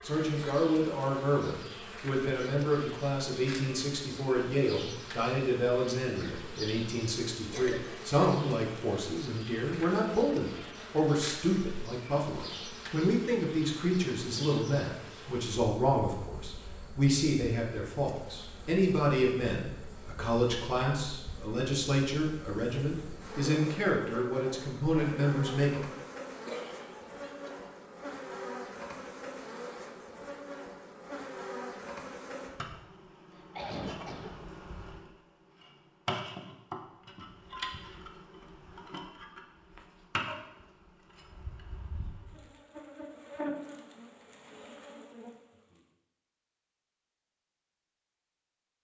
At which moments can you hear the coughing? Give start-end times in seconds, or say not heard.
7.5-8.1, 26.4-27.7, 33.4-34.4.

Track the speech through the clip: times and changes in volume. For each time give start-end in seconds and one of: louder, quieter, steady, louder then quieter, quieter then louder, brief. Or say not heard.
0.0-25.9 steady.